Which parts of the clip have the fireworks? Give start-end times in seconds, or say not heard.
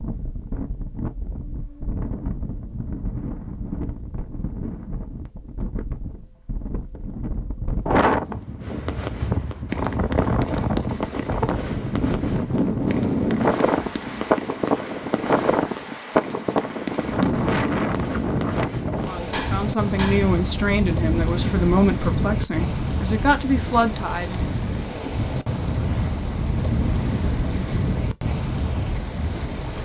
8.6-20.3.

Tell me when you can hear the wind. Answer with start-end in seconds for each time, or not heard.
0.0-29.7.